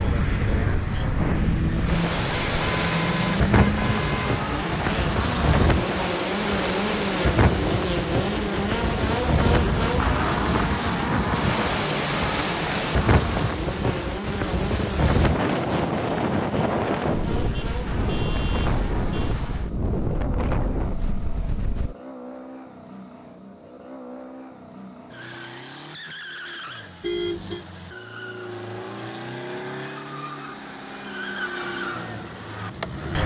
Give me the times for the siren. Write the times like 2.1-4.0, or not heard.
not heard.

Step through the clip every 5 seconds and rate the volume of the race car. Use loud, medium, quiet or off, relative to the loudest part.
loud, loud, loud, medium, quiet, medium, medium.